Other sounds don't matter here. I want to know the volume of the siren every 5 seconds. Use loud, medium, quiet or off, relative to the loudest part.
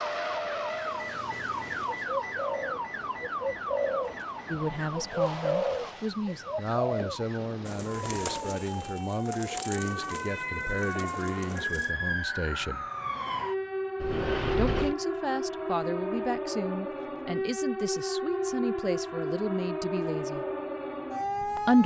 loud, medium, loud, loud, loud.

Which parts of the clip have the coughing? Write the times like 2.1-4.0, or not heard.
not heard.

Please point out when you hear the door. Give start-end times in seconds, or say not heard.
14.0-14.9.